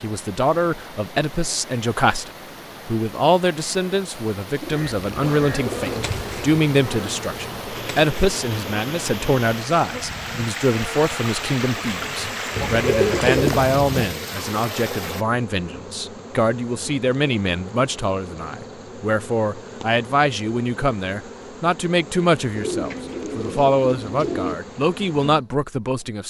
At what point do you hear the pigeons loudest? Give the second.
13 s.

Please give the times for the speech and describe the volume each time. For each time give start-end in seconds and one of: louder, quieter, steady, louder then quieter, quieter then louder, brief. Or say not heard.
0.0-26.2 steady.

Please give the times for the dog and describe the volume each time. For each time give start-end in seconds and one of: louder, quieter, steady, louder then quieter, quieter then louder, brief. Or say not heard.
not heard.